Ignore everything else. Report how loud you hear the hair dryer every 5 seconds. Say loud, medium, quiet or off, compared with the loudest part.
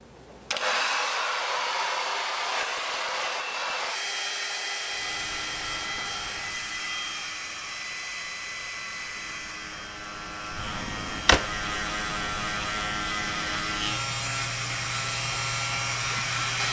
loud, medium, medium, loud.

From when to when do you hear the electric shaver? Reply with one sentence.
The electric shaver can be heard from 4.8 to 16.6 s.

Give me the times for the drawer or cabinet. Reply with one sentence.
The drawer or cabinet can be heard from 10.5 to 11.7 s.